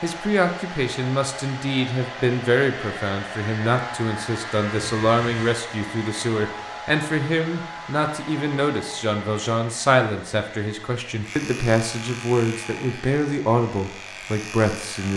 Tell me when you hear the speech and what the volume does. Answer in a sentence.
The speech can be heard from 0.0 to 15.1 s, at a steady volume.